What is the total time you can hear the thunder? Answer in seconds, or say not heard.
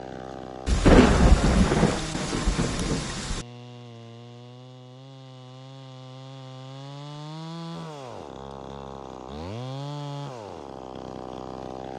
3 s.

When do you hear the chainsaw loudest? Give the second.
10 s.